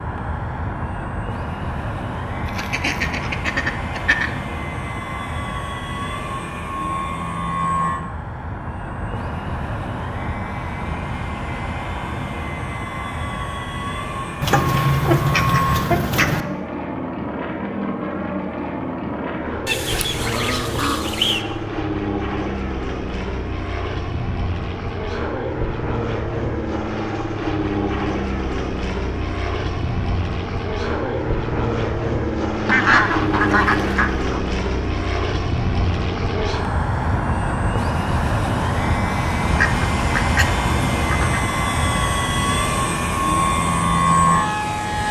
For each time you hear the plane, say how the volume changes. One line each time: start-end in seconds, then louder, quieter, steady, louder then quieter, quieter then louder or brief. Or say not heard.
0.0-45.0 louder.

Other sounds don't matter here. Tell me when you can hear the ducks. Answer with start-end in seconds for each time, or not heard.
2.5-4.3, 14.4-16.4, 19.6-21.4, 32.6-34.4, 39.5-41.4.